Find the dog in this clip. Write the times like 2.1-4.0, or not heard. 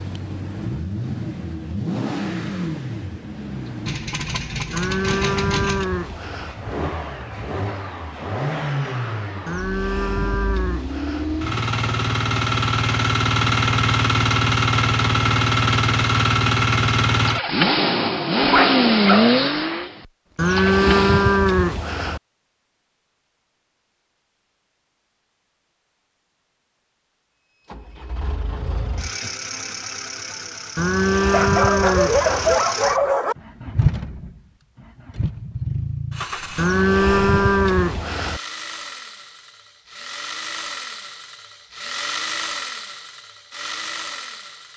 18.4-19.4, 31.3-33.4.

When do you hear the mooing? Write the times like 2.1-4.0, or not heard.
4.7-6.5, 9.4-11.2, 20.4-22.2, 30.8-32.6, 36.5-38.4.